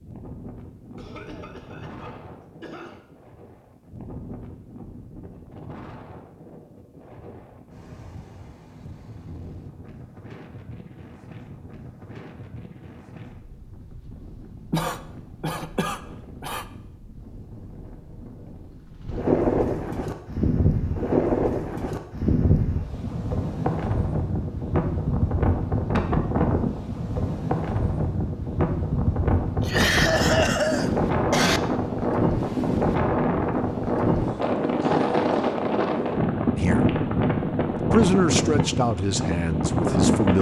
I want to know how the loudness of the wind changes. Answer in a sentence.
The loudness of the wind goes up.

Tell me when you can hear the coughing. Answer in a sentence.
The coughing can be heard from 0.9 to 3.0 s, from 14.7 to 16.6 s and from 29.6 to 31.6 s.